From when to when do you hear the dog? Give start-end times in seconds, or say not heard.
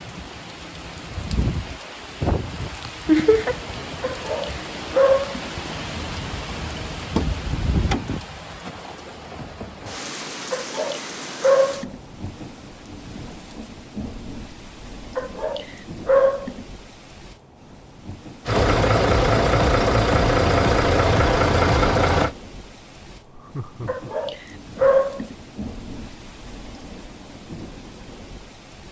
4.0-5.5, 10.5-11.9, 15.2-16.6, 23.9-25.4.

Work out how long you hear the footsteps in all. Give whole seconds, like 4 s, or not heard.
not heard.